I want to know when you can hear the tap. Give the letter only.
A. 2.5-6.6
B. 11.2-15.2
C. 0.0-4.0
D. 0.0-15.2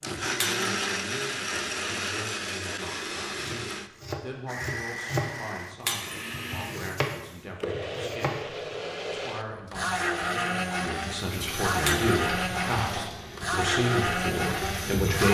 B.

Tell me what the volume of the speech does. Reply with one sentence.
The volume of the speech goes up.